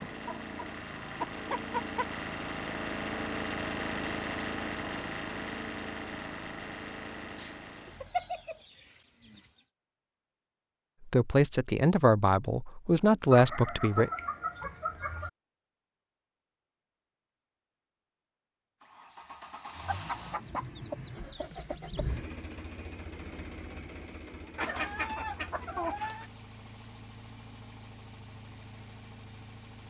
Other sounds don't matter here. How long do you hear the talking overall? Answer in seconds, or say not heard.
3 s.